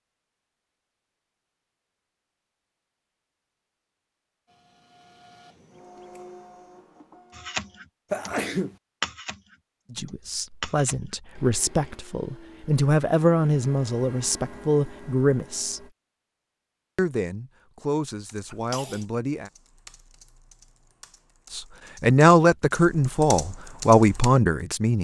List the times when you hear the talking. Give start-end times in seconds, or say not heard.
9.9-15.8, 16.9-19.5, 21.5-24.9.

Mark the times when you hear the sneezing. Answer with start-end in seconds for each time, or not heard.
8.1-8.8, 18.5-19.0.